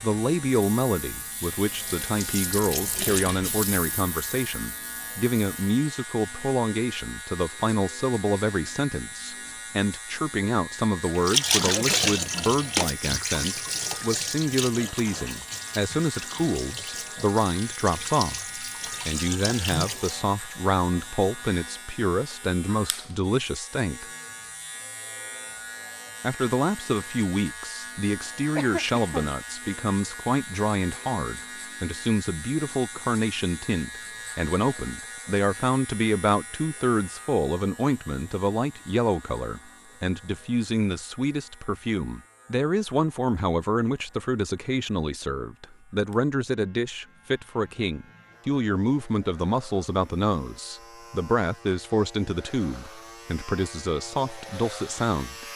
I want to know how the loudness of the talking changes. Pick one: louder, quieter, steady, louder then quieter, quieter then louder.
steady.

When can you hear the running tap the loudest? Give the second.
12 s.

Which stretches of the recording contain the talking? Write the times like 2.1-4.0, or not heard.
0.0-24.1, 26.2-55.5.